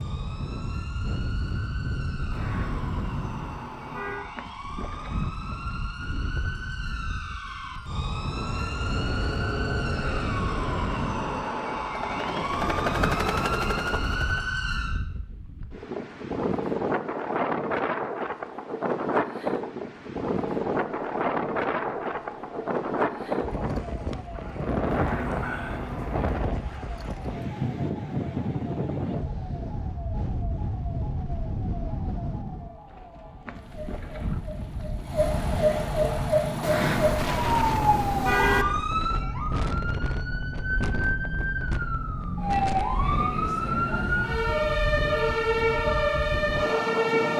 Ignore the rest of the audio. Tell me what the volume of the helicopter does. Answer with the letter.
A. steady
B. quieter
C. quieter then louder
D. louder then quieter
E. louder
E.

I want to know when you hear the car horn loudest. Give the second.
38 s.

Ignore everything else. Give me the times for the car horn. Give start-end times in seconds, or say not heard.
2.3-4.2, 24.9-26.3, 36.6-38.6.